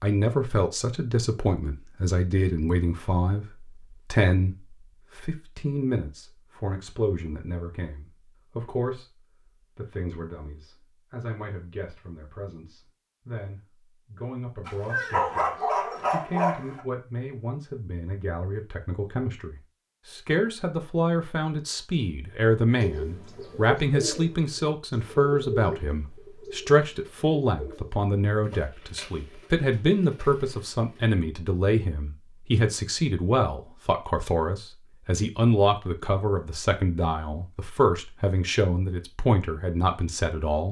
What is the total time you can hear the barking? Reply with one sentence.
You can hear the barking for 2 seconds altogether.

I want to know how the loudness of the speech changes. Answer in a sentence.
The loudness of the speech goes down, then up.